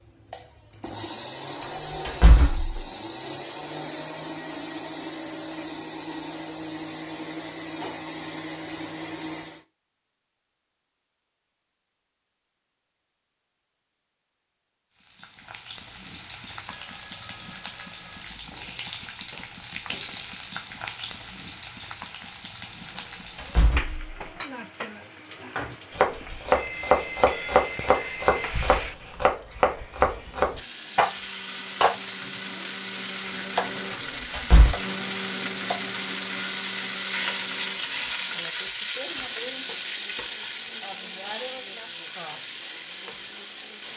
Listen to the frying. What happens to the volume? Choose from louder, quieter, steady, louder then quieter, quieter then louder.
louder.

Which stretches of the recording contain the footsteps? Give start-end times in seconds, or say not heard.
not heard.